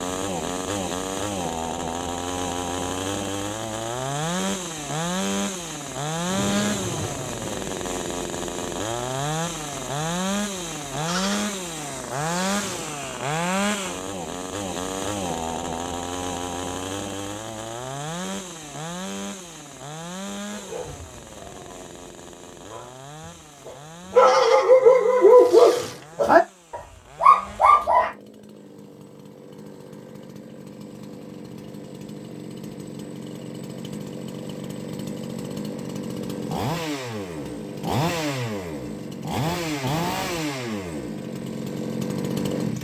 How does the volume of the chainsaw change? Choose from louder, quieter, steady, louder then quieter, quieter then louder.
quieter then louder.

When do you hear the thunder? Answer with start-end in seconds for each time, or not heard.
6.2-7.6.